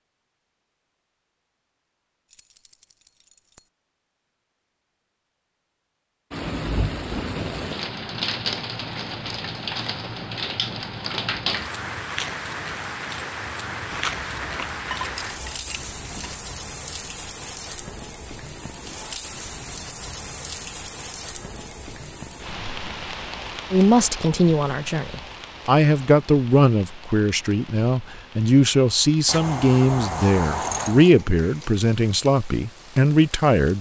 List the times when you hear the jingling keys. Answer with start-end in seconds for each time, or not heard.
2.2-3.7, 13.9-16.4, 29.2-31.1.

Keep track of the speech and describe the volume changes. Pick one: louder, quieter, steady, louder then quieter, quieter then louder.
steady.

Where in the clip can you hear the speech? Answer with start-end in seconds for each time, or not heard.
23.7-33.7.